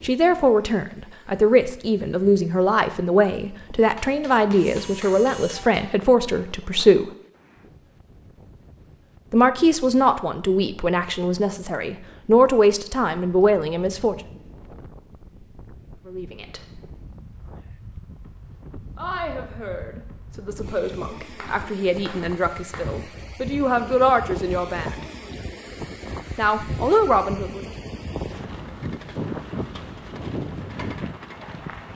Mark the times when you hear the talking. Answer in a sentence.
The talking can be heard from 0.0 to 7.1 s, from 9.3 to 14.2 s, from 16.1 to 16.6 s, from 18.9 to 25.1 s and from 26.4 to 27.6 s.